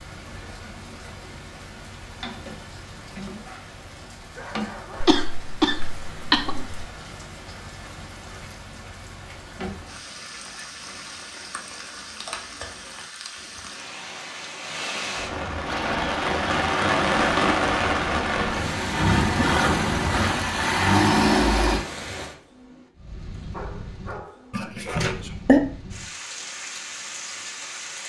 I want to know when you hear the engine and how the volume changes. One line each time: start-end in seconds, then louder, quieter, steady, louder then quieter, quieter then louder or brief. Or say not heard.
15.7-21.9 louder.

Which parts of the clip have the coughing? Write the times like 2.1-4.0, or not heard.
5.0-6.8, 24.5-25.6.